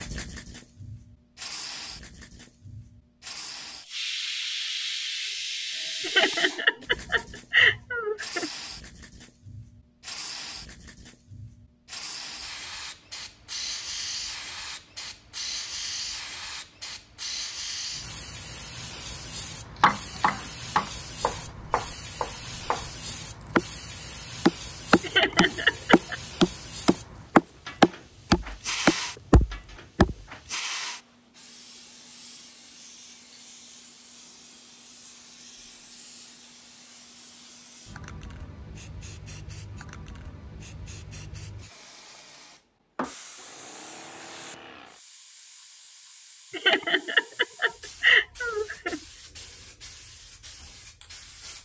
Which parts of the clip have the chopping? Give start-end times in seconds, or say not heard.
19.8-30.1.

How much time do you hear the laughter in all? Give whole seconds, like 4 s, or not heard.
6 s.